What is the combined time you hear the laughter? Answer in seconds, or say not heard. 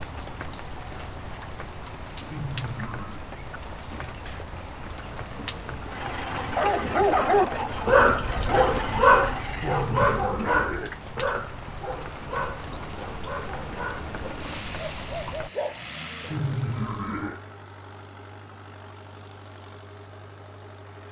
3 s.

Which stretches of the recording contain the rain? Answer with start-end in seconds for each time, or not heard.
0.0-15.5.